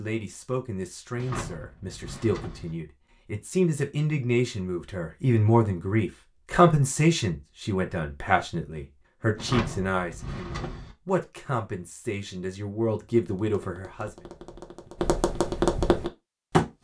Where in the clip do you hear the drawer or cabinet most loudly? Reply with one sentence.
The loudest moment of the drawer or cabinet is at 10 seconds.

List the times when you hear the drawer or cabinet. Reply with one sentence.
The drawer or cabinet can be heard from 1.1 to 2.8 s and from 9.3 to 10.9 s.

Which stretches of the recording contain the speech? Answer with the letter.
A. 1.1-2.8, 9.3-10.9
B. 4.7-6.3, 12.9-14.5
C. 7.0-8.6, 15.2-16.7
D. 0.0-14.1
D.